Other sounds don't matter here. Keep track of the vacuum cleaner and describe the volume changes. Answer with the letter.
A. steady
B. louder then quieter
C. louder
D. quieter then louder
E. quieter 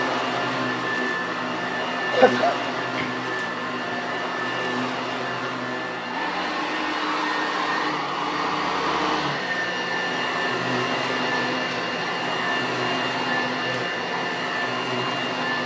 A.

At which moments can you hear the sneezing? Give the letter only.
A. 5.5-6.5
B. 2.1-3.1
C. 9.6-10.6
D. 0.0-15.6
B.